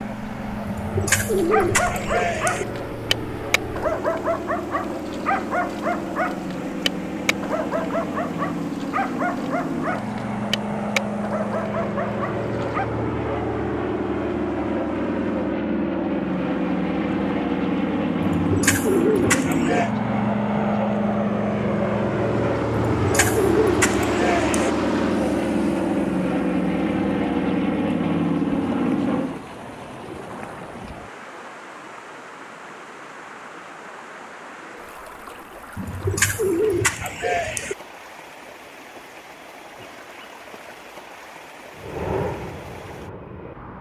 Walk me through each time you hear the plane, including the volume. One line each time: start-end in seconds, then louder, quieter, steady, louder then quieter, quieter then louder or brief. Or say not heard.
0.0-29.4 louder
41.7-43.7 brief.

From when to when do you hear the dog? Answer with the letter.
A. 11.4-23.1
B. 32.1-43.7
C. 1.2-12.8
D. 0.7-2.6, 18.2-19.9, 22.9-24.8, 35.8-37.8
C.